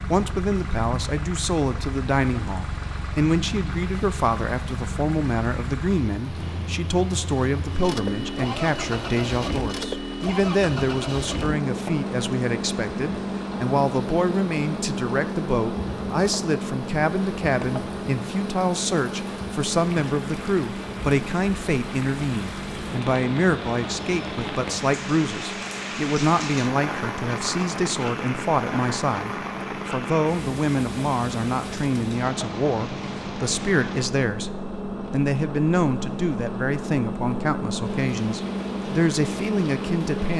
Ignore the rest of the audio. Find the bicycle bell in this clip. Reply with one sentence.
You can't hear the bicycle bell here.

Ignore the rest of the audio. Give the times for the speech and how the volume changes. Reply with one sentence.
The speech can be heard from 0.0 to 40.3 s, at a steady volume.